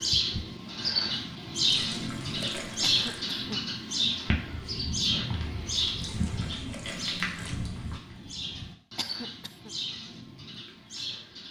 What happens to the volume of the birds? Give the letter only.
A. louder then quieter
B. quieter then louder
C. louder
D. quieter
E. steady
D.